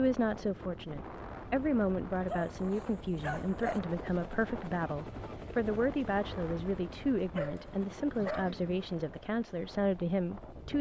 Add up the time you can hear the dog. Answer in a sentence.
You can hear the dog for 3 seconds altogether.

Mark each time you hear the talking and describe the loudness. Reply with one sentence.
You can hear the talking from 0.0 to 10.7 s, at a steady volume.